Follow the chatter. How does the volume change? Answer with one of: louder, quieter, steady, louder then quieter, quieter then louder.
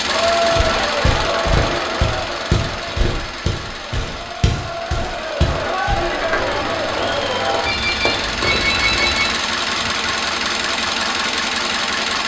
quieter then louder.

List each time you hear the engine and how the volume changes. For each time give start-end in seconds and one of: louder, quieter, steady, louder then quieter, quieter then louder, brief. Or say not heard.
0.0-12.2 quieter then louder.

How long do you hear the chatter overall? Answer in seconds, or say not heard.
8 s.